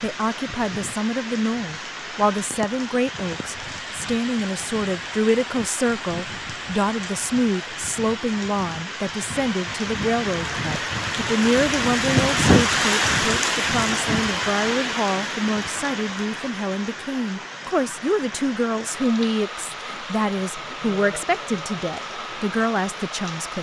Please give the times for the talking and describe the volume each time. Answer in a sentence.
You can hear the talking from 0.0 to 23.5 s, at a steady volume.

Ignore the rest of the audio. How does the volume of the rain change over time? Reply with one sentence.
The volume of the rain goes up, then down.